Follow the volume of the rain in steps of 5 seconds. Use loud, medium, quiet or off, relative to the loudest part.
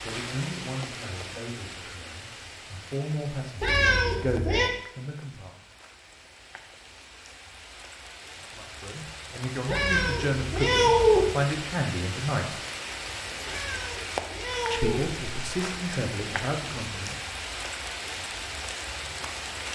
medium, medium, loud, loud.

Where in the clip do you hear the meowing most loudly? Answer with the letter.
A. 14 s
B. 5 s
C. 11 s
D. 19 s
C.